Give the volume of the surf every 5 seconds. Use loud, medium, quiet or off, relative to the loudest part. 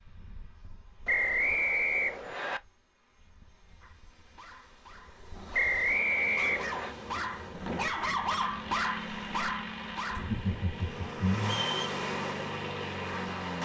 off, medium, loud.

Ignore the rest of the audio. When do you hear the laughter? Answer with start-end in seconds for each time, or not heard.
10.1-11.7.